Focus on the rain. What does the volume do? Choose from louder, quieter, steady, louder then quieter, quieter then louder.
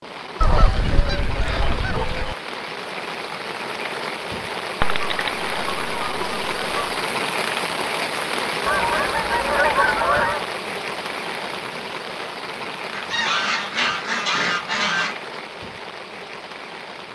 louder then quieter.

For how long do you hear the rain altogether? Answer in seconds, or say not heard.
17 s.